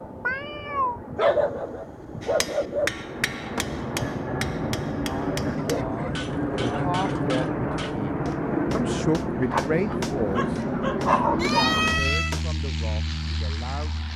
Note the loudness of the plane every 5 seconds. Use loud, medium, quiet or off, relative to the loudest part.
medium, loud, loud.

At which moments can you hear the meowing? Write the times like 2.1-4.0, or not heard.
0.2-1.0, 11.3-12.3.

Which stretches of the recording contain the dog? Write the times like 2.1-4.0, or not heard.
1.1-2.9, 5.5-7.0, 9.4-11.8.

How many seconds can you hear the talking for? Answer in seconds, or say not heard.
9 s.